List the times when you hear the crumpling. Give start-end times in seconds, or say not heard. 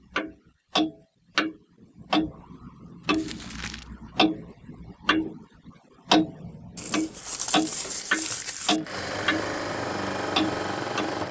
3.0-3.9, 6.8-8.8.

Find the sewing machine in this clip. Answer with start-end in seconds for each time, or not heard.
6.8-11.2.